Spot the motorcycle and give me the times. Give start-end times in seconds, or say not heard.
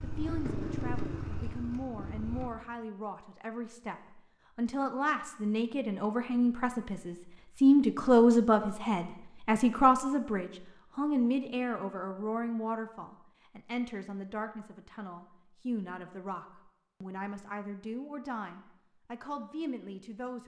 0.0-2.5.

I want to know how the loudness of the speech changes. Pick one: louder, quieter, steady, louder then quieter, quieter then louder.
louder then quieter.